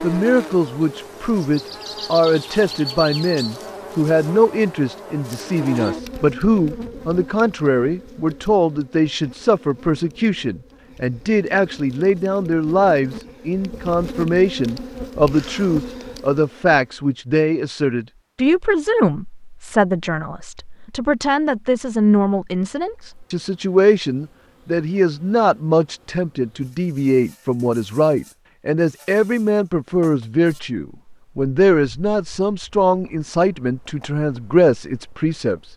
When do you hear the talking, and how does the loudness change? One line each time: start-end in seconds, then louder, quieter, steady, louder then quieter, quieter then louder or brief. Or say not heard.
0.0-35.6 steady.